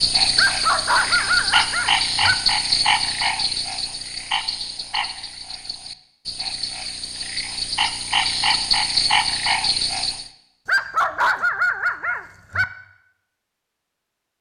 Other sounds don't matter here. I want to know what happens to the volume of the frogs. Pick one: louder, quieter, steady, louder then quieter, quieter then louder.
quieter then louder.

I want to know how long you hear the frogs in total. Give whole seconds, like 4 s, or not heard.
10 s.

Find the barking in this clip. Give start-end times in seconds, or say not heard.
0.3-2.4, 10.7-12.7.